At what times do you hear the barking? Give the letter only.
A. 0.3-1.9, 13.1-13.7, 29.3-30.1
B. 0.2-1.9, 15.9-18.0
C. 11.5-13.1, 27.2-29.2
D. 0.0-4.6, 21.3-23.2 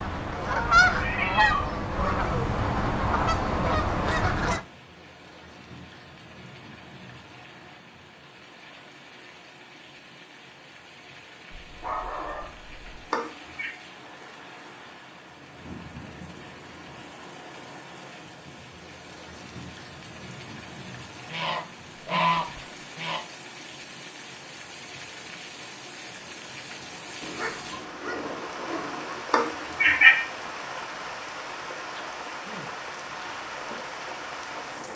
C.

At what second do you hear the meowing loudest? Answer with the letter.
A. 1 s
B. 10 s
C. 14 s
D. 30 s
D.